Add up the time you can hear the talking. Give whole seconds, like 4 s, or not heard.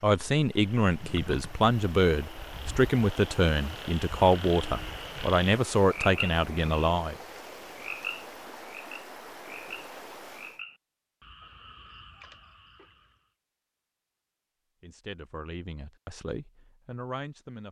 10 s.